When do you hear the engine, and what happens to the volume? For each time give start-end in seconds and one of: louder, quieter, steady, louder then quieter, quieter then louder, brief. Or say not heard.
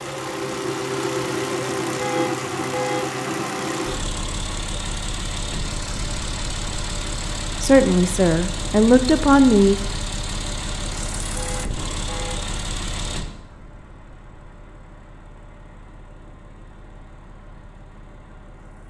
0.0-18.8 quieter.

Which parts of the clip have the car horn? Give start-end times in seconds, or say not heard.
1.9-3.0, 11.3-12.4.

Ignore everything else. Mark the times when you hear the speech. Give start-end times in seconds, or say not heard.
7.6-9.8.